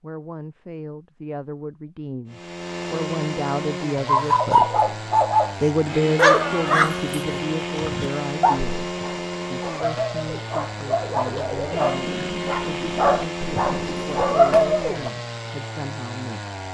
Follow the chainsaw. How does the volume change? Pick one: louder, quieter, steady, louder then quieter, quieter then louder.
steady.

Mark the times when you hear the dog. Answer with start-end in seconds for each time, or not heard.
4.0-5.5, 6.2-15.1.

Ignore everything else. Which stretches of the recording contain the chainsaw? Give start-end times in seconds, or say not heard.
2.2-16.6.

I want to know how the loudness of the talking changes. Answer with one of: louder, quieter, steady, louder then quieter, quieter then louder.
louder then quieter.